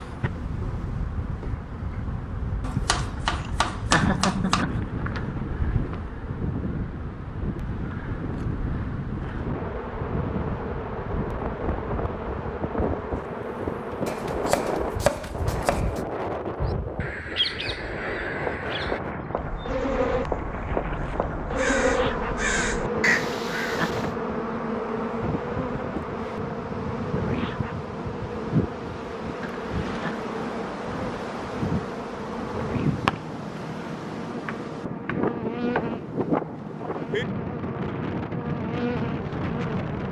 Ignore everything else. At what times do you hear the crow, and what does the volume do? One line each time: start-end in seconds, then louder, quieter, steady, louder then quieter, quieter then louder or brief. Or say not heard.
16.6-24.1 quieter then louder.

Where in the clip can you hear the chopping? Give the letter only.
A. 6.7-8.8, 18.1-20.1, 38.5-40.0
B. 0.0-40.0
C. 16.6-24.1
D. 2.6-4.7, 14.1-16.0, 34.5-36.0
D.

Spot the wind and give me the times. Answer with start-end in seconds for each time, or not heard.
0.0-40.0.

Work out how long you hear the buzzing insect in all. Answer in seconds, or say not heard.
40 s.